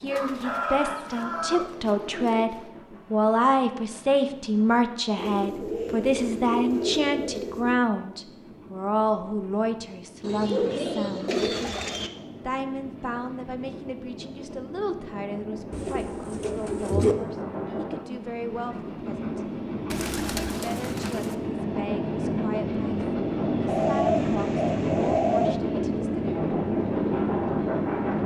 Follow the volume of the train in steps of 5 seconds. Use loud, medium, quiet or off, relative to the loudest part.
quiet, quiet, quiet, medium, loud, loud.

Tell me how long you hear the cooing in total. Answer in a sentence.
You can hear the cooing for 12 seconds altogether.